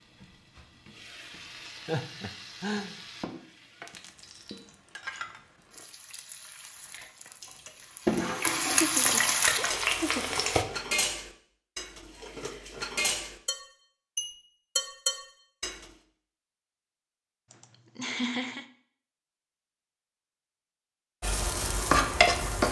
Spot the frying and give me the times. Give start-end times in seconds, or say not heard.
0.0-10.7, 21.2-22.6.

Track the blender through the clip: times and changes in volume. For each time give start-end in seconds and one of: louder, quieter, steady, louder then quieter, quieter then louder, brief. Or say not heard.
not heard.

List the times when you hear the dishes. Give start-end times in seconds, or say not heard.
6.9-15.8.